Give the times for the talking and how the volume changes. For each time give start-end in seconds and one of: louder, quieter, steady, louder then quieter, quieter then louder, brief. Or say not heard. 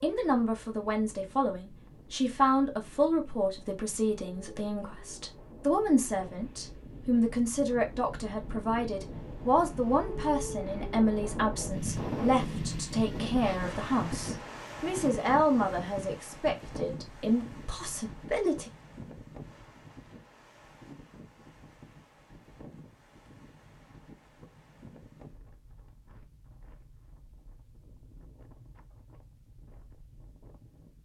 0.0-18.7 steady.